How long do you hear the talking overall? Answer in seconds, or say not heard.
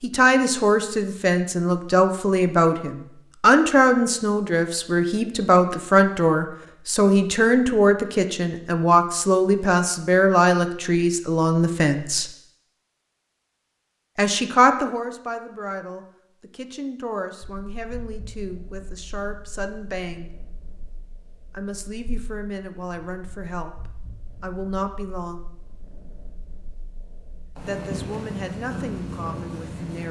25 s.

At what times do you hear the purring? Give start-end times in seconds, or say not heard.
17.4-30.0.